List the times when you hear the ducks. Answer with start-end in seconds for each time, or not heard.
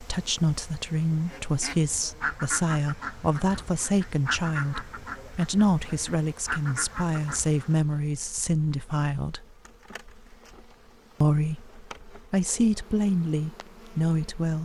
1.2-7.7.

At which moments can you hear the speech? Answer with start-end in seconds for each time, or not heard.
0.0-9.4, 11.2-14.5.